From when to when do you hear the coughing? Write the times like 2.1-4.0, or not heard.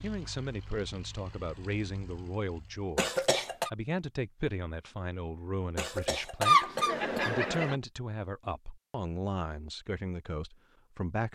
3.0-3.7, 5.8-7.8.